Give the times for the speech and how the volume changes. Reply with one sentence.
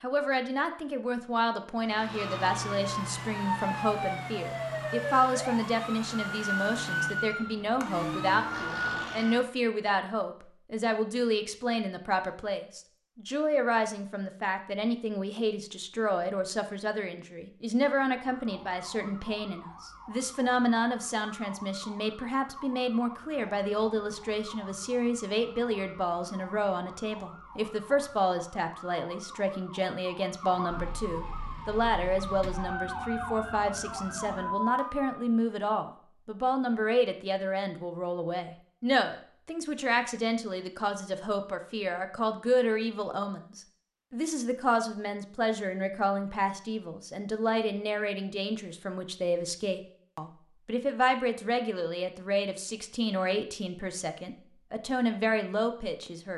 You can hear the speech from 0.0 to 56.3 s, at a steady volume.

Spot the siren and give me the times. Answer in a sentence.
The siren can be heard from 1.8 to 9.5 s and from 17.9 to 35.1 s.